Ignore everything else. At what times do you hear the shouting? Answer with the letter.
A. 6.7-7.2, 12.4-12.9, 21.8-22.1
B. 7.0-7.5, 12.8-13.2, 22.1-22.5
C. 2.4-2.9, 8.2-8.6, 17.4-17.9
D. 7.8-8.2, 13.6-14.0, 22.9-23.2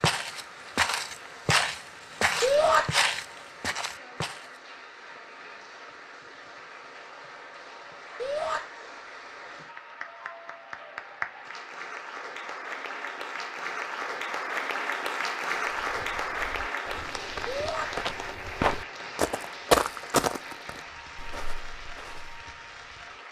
C.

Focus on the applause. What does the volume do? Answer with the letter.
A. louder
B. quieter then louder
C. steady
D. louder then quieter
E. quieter
D.